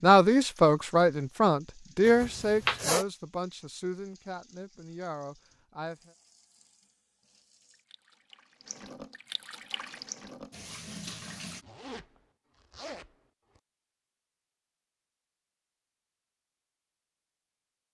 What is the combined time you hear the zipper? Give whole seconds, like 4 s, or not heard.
3 s.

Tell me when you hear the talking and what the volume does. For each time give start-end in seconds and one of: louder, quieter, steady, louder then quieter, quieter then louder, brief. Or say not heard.
0.0-6.1 quieter.